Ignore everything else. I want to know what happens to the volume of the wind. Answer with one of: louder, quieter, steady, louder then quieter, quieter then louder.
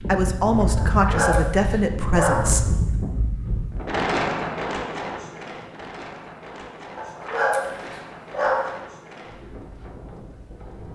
quieter.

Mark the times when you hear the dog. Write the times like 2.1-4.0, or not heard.
0.8-2.5, 7.0-8.7.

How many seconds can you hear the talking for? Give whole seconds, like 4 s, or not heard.
3 s.